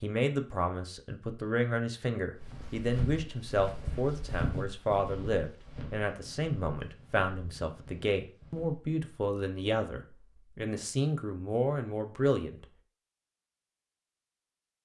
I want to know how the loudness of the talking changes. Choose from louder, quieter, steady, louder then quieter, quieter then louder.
steady.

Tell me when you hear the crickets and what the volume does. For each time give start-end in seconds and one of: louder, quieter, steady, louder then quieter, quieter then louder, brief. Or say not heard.
not heard.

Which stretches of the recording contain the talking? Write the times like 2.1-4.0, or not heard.
0.0-12.7.